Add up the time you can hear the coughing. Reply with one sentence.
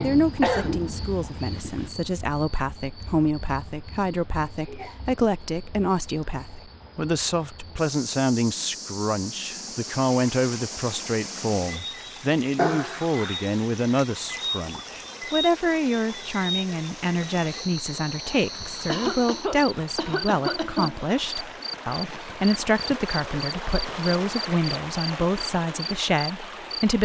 You can hear the coughing for 5 seconds altogether.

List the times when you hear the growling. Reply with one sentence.
The growling can't be heard in this clip.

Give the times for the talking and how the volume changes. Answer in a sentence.
The talking can be heard from 0.0 to 26.9 s, at a steady volume.